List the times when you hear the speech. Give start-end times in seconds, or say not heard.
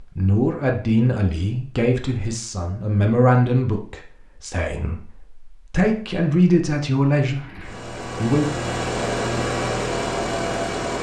0.0-8.5.